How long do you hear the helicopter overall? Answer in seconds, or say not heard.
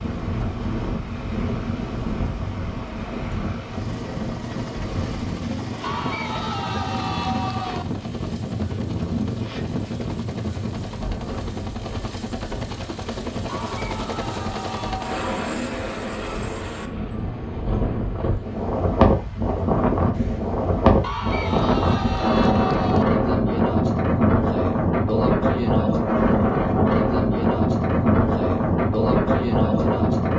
19 s.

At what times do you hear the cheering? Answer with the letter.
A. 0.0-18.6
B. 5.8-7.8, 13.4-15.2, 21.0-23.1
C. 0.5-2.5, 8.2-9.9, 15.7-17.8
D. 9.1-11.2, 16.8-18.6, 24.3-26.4
B.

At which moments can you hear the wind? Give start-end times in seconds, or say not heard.
0.0-30.3.